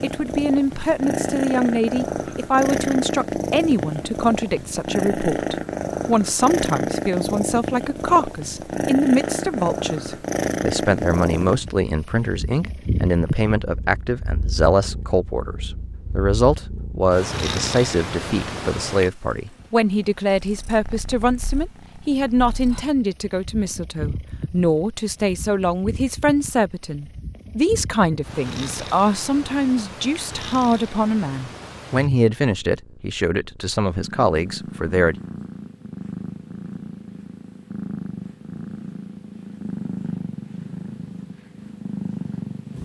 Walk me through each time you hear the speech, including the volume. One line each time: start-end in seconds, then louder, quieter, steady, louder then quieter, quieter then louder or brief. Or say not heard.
0.0-35.1 steady.